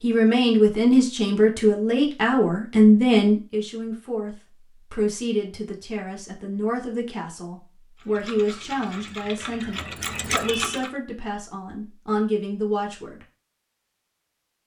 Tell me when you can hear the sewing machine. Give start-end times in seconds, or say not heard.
8.0-10.9.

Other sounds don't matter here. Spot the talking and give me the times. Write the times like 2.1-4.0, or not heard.
0.0-13.2.